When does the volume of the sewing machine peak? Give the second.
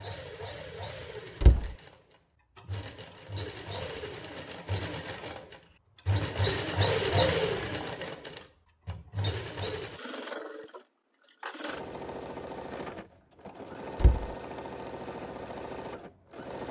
7 s.